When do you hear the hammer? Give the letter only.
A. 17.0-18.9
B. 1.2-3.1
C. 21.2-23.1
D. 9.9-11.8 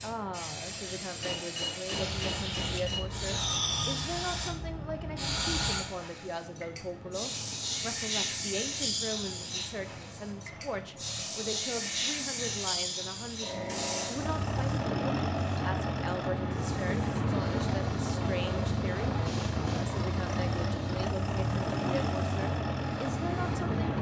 B.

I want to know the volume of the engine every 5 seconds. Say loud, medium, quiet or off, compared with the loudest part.
quiet, quiet, medium, loud, loud.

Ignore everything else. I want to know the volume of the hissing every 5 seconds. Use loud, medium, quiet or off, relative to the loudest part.
loud, loud, loud, quiet, quiet.